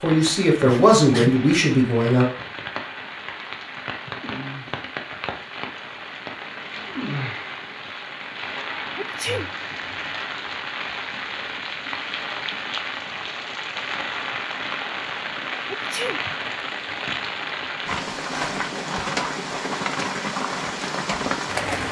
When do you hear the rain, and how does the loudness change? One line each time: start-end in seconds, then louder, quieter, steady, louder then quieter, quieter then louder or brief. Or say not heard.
0.0-21.8 louder.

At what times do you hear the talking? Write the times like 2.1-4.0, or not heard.
0.0-2.2.